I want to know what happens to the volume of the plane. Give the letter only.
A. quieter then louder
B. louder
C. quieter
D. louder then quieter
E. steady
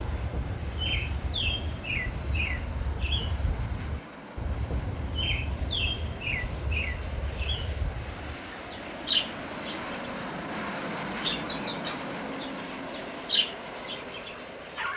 B.